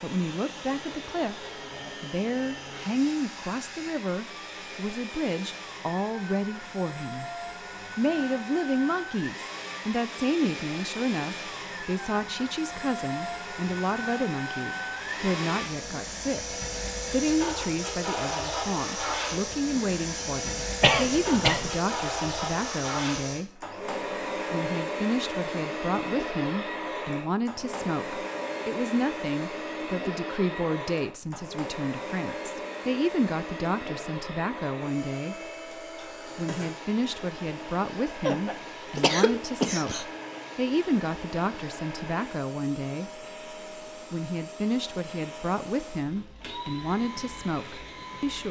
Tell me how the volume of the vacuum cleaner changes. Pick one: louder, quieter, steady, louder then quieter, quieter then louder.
louder then quieter.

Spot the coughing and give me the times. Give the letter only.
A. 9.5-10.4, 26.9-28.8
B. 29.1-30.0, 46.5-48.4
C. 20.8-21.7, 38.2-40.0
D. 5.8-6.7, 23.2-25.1
C.